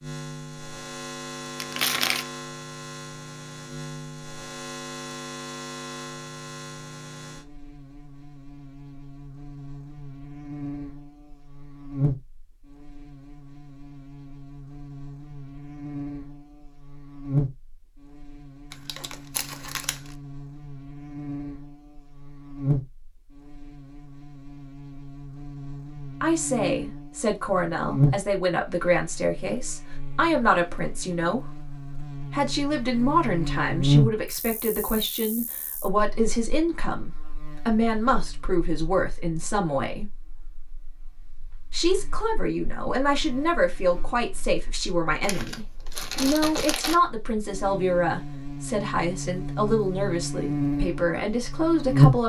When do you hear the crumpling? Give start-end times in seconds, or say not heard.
1.6-2.3, 18.7-20.1, 45.2-47.0.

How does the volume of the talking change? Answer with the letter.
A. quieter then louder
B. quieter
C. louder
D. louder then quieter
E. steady
E.